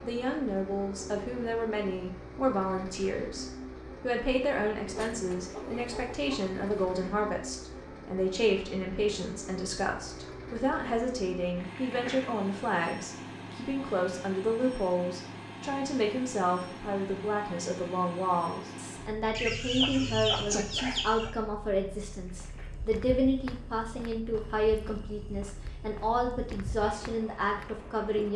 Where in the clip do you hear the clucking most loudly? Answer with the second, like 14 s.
20 s.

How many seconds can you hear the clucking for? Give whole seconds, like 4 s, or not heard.
4 s.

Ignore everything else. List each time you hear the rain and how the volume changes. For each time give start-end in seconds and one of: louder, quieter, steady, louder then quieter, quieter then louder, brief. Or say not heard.
not heard.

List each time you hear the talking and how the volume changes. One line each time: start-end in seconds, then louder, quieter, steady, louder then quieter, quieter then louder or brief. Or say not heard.
0.0-28.3 steady.